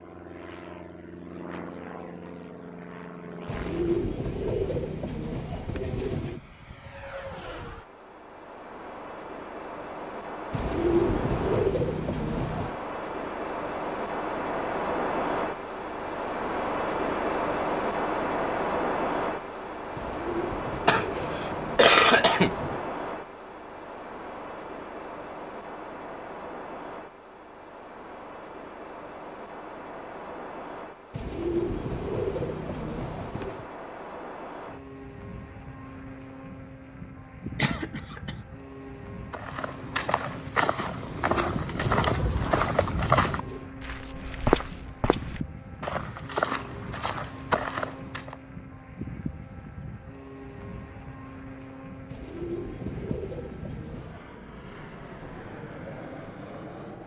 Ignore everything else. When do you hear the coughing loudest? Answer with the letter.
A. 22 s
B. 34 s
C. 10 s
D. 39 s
A.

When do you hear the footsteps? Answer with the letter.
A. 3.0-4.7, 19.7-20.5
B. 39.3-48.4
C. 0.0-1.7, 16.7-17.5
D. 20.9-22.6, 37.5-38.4
B.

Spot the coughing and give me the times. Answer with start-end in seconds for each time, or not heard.
20.9-22.6, 37.5-38.4.